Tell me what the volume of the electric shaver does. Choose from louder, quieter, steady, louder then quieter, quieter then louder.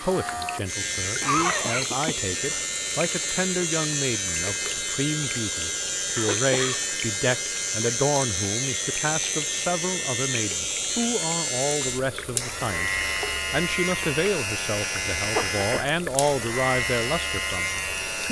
steady.